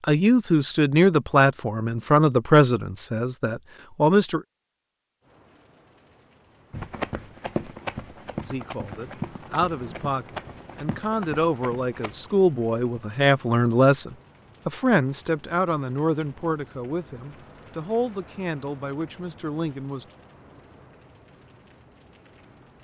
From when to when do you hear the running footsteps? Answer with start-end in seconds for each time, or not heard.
6.7-12.2.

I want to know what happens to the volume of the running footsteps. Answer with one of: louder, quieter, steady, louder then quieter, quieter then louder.
quieter.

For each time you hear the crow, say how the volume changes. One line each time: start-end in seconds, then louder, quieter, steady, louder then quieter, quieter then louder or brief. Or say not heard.
not heard.